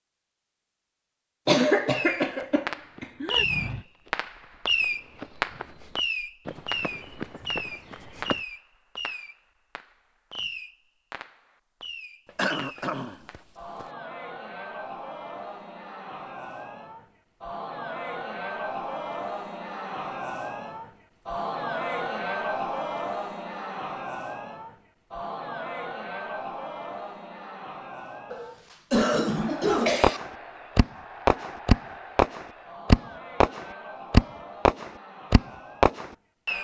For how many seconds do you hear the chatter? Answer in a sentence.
You can hear the chatter for 23 seconds altogether.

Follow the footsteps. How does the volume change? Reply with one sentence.
The loudness of the footsteps goes down, then up.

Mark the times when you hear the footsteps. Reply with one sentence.
You can hear the footsteps from 3.0 to 8.4 s.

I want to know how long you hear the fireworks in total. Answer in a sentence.
The fireworks can be heard for 18 seconds in total.